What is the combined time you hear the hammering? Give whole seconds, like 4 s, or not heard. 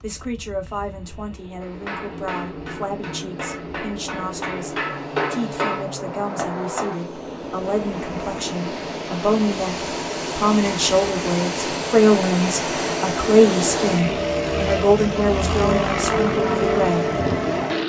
5 s.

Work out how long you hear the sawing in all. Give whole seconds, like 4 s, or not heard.
not heard.